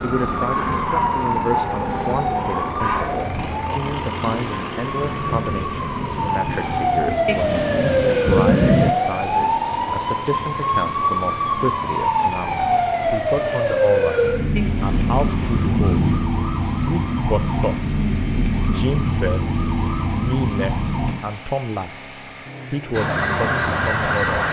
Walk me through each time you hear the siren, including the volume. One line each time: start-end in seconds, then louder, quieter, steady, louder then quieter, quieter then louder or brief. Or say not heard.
0.0-21.1 steady
22.9-24.4 brief.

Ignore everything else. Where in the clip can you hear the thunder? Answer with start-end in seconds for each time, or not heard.
7.2-8.9, 14.6-16.2.